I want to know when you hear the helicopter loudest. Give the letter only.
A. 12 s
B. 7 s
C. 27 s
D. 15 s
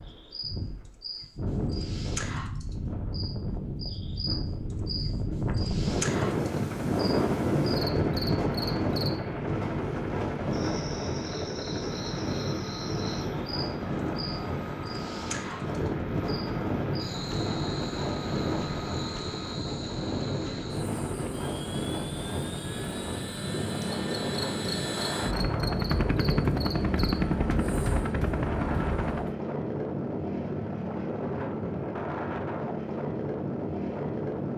C.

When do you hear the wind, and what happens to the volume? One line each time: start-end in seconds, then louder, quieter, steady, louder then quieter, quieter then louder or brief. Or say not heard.
0.0-34.5 steady.